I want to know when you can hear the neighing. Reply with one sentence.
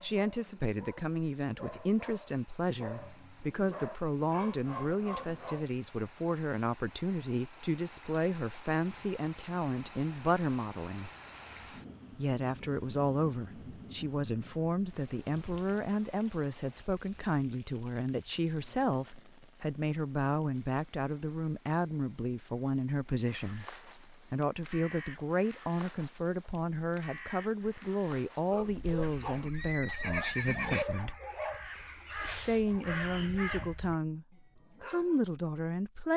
You can hear the neighing from 28.8 to 30.9 s.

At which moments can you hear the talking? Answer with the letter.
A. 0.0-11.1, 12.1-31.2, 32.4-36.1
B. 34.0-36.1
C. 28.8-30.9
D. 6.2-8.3
A.